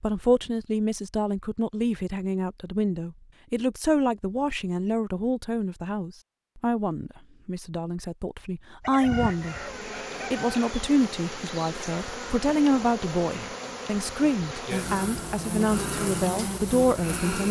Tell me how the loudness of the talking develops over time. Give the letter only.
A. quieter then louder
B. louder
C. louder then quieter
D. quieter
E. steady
E.